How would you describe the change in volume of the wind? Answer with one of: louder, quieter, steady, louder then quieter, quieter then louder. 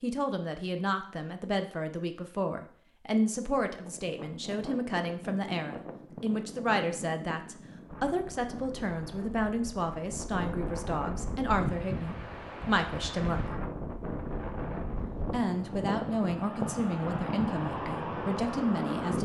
louder.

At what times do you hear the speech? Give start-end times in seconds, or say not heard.
0.0-13.4, 15.2-19.2.